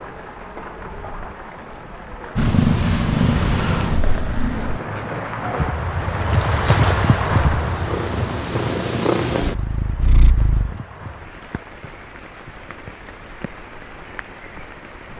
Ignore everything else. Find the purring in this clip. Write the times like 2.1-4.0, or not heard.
2.4-4.8, 7.5-10.8.